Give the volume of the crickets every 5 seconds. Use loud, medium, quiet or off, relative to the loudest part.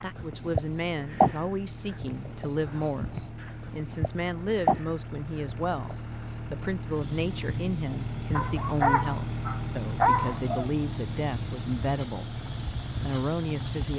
loud, medium, medium.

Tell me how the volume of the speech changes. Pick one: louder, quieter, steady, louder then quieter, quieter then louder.
steady.